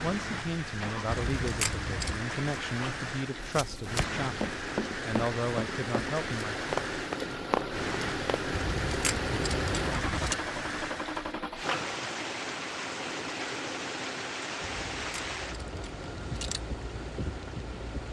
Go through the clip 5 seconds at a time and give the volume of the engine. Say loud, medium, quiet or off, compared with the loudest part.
medium, loud, loud, medium.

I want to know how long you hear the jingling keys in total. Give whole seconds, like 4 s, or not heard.
5 s.